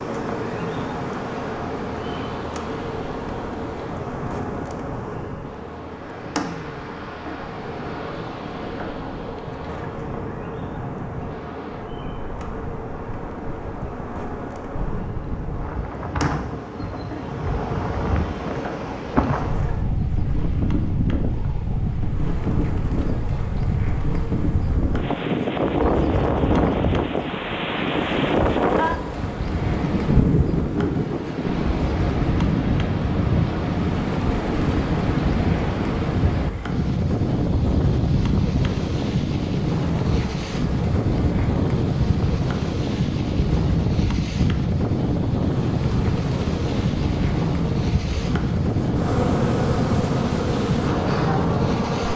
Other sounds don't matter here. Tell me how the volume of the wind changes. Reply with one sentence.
The loudness of the wind goes up.